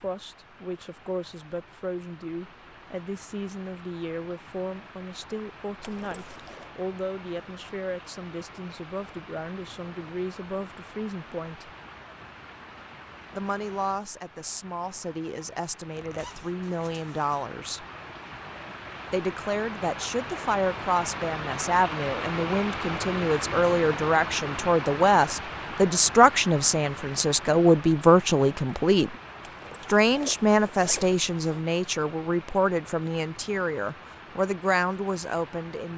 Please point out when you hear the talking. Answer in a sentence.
The talking can be heard from 0.0 to 11.7 s, from 13.3 to 17.9 s, from 19.1 to 29.1 s and from 29.9 to 35.9 s.